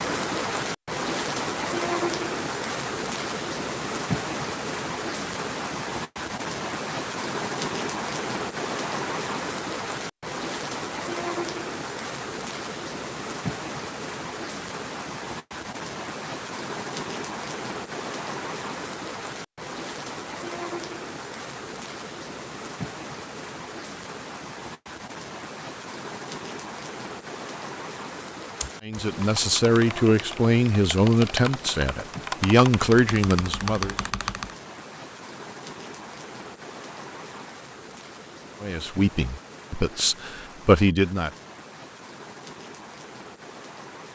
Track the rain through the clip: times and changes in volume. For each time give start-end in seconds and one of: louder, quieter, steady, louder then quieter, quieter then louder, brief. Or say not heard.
0.0-44.1 quieter.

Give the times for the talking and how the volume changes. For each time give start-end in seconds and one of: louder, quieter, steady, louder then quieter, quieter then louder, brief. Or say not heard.
28.8-34.0 steady
38.6-41.3 brief.